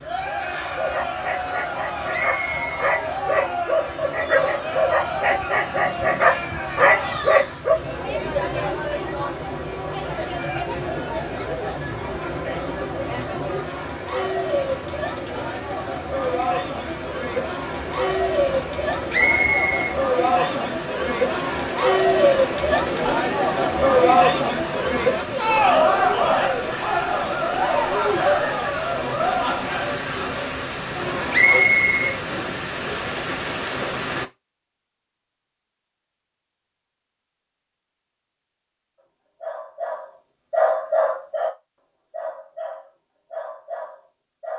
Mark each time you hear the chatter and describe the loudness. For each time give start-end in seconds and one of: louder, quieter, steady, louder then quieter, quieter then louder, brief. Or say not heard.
0.0-31.7 louder.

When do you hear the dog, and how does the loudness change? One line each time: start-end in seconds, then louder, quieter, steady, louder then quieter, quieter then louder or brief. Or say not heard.
0.8-7.8 louder
39.4-41.5 brief
42.1-44.5 brief.